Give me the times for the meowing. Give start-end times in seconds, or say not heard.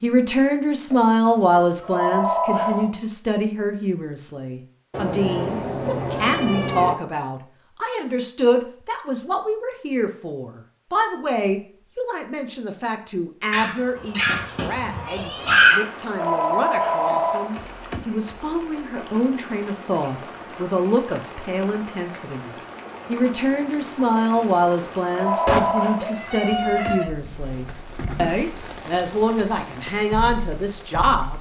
4.9-7.0, 13.5-15.8, 25.4-27.1.